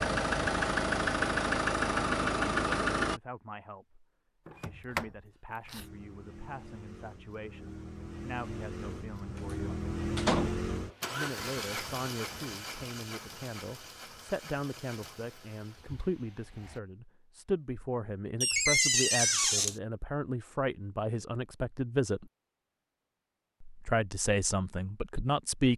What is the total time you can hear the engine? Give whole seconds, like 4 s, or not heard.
14 s.